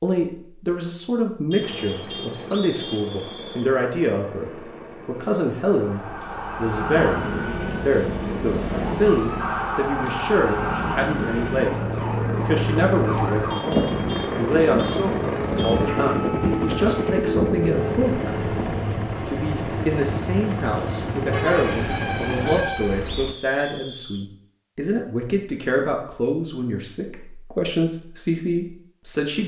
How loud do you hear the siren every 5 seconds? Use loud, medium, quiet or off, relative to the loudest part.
off, loud, loud, loud, off, off.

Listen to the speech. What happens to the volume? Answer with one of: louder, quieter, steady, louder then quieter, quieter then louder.
steady.